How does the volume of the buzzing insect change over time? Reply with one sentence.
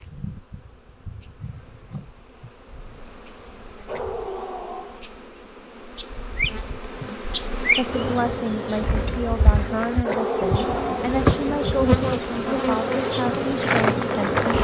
The volume of the buzzing insect goes up.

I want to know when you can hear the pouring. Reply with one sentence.
You can't hear the pouring here.